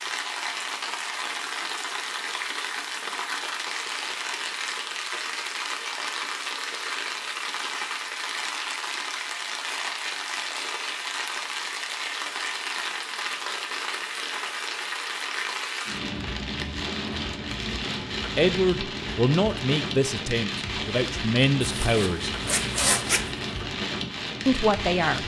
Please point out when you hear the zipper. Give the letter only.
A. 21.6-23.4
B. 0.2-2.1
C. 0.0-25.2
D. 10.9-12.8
A.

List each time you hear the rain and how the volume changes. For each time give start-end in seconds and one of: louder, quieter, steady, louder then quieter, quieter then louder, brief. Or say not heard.
0.0-25.2 steady.